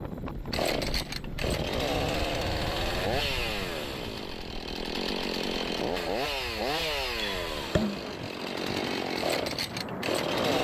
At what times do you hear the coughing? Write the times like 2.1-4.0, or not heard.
not heard.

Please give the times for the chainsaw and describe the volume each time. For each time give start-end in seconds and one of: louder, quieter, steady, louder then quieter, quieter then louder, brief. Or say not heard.
0.0-10.5 steady.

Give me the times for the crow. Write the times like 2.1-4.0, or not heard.
not heard.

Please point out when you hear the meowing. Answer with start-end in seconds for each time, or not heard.
7.2-8.3.